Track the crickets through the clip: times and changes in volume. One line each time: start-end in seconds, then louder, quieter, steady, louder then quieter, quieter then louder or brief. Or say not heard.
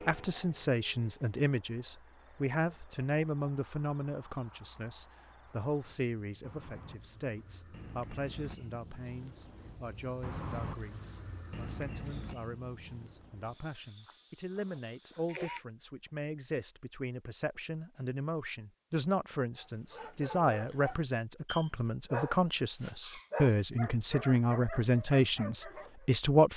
0.0-15.6 louder then quieter.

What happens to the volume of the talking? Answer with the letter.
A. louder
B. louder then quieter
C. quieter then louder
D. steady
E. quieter
C.